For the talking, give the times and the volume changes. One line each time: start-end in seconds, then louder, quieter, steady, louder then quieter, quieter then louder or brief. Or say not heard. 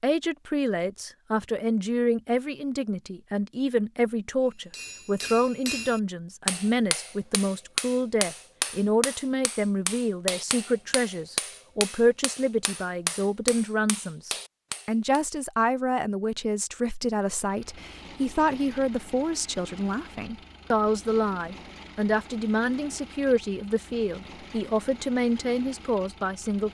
0.0-26.6 steady.